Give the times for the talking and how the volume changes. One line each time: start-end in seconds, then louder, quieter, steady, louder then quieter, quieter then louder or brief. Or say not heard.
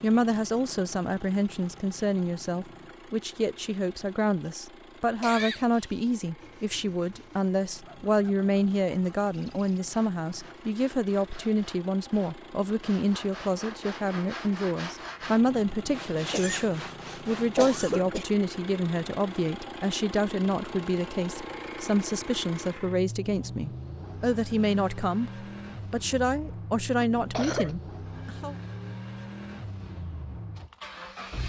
0.0-28.6 steady.